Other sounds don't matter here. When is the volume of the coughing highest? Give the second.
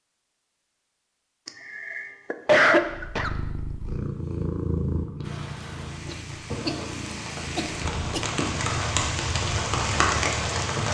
3 s.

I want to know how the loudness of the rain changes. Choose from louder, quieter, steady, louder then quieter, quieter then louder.
louder.